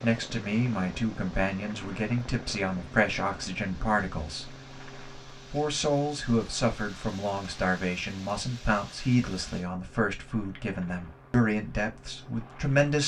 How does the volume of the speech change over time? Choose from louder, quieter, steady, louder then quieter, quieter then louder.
steady.